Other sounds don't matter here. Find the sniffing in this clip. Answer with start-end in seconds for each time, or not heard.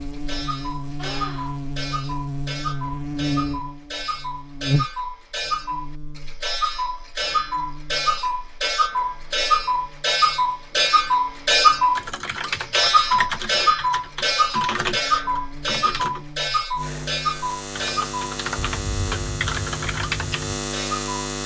0.9-1.6.